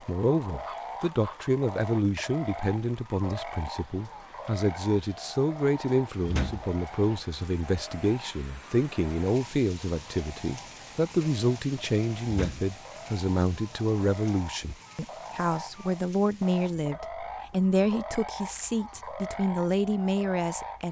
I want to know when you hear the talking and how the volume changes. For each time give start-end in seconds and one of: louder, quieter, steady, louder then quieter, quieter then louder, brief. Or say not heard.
0.1-20.8 steady.